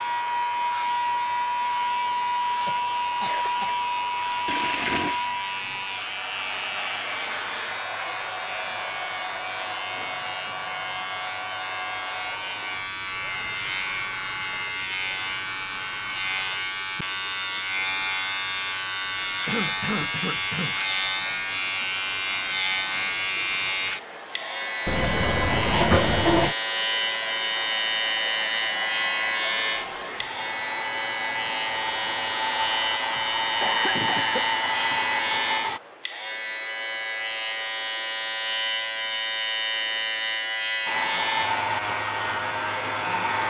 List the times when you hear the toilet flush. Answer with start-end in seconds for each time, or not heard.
4.5-5.2, 24.9-26.6.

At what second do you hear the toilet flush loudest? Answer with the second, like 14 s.
26 s.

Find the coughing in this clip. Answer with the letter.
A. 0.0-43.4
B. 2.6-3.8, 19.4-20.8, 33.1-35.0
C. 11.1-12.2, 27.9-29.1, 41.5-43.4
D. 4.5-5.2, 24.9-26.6
B.